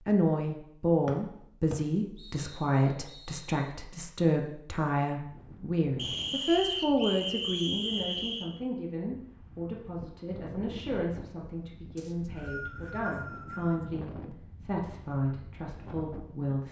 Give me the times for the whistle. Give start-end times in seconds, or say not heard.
1.1-3.6, 6.0-8.5, 11.9-13.8.